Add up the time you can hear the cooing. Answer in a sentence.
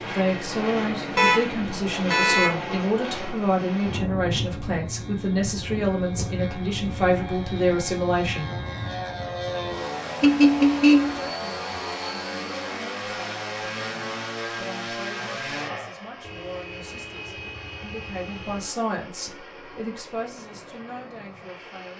You can't hear the cooing here.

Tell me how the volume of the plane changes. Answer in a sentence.
The volume of the plane goes down.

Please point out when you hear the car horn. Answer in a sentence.
The car horn can be heard from 1.1 to 2.5 s, from 10.2 to 11.2 s and from 16.2 to 18.7 s.